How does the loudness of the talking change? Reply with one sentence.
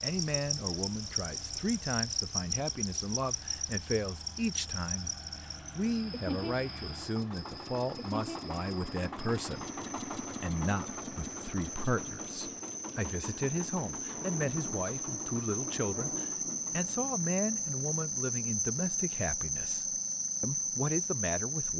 The loudness of the talking stays about the same.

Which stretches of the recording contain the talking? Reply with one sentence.
You can hear the talking from 0.0 to 5.2 s and from 5.8 to 21.7 s.